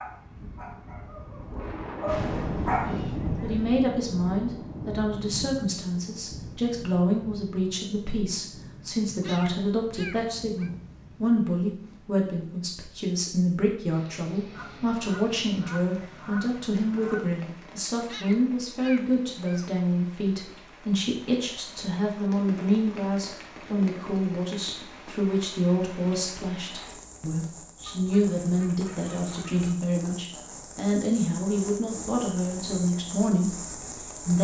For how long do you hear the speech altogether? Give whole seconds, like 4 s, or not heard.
31 s.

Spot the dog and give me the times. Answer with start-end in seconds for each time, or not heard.
0.0-3.0.